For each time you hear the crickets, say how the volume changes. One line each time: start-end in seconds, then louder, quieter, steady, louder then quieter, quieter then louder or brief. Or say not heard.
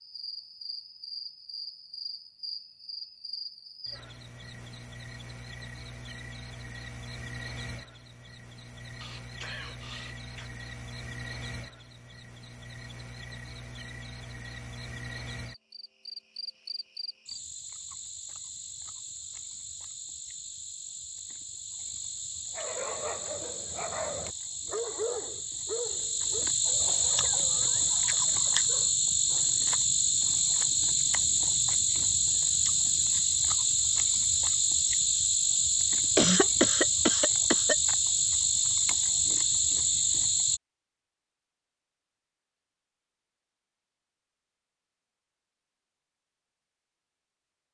0.0-40.6 louder.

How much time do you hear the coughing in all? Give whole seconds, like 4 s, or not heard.
4 s.